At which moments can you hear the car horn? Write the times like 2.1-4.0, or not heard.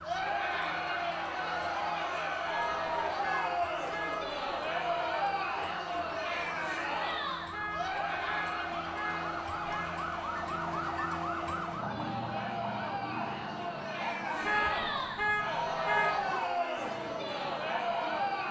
2.5-4.4, 7.5-9.9, 14.4-16.2.